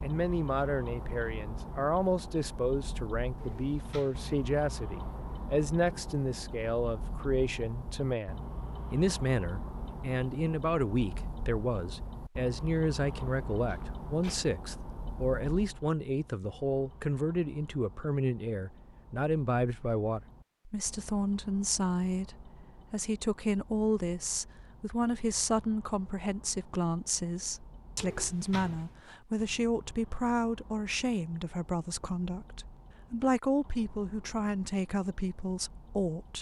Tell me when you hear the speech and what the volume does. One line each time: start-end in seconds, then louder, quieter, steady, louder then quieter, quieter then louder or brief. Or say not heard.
0.0-36.3 steady.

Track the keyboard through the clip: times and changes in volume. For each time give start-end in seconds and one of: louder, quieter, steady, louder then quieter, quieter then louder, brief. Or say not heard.
not heard.